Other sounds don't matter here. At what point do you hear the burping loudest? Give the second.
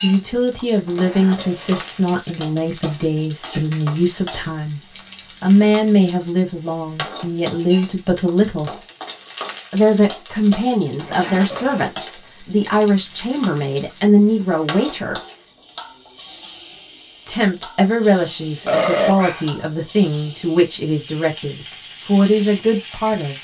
19 s.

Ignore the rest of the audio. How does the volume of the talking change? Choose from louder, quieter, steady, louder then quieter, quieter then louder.
steady.